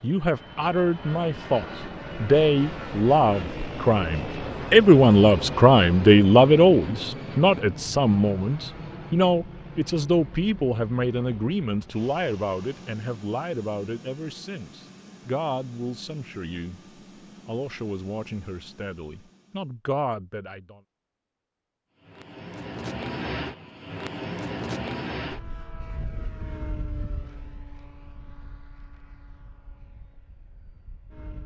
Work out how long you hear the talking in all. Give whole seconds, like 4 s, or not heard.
20 s.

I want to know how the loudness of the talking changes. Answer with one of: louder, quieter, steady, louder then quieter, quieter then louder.
quieter.